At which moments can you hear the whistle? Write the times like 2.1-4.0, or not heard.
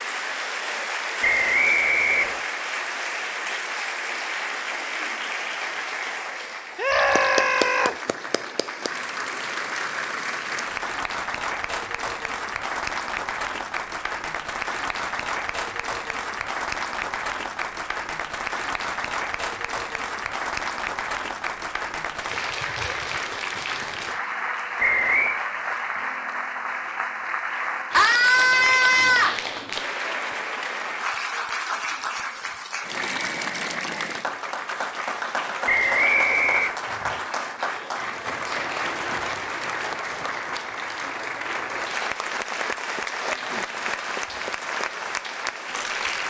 1.2-2.5, 24.8-25.4, 35.6-36.8.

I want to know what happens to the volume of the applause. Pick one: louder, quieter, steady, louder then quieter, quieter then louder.
steady.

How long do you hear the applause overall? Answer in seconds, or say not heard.
46 s.